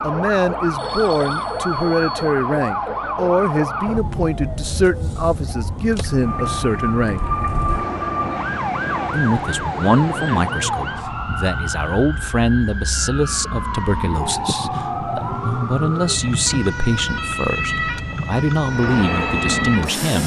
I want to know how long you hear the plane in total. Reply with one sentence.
You can hear the plane for 5 seconds altogether.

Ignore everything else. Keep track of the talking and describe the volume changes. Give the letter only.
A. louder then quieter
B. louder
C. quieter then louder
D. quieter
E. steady
E.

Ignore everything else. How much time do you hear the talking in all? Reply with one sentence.
You can hear the talking for 18 seconds altogether.